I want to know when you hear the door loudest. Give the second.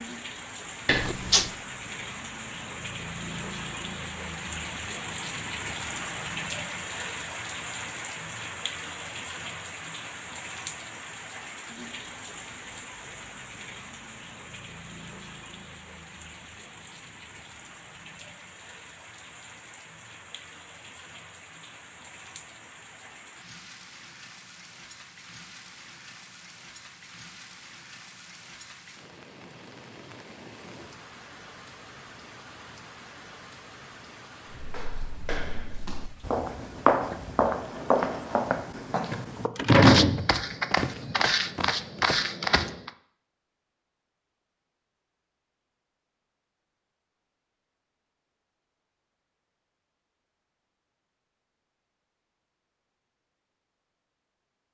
40 s.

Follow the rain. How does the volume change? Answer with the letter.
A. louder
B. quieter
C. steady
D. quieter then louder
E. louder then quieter
B.